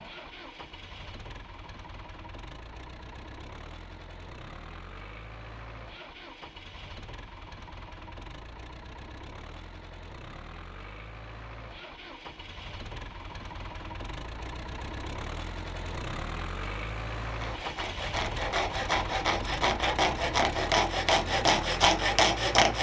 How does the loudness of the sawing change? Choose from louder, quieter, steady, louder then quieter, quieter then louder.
louder.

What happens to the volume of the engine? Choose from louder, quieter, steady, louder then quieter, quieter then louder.
louder.